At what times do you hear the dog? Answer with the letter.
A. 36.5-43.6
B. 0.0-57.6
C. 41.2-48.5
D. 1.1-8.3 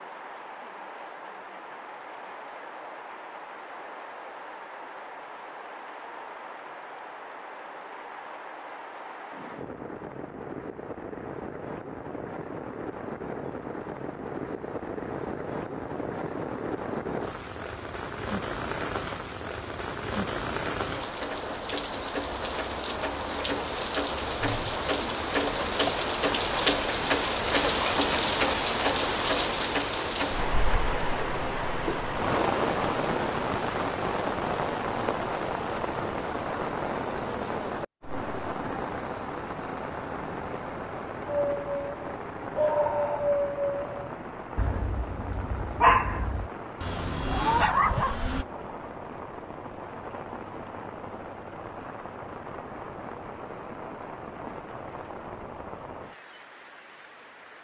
C.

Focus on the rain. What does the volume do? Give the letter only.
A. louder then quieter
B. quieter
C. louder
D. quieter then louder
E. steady
A.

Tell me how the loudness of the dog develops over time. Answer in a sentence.
The volume of the dog goes down, then up.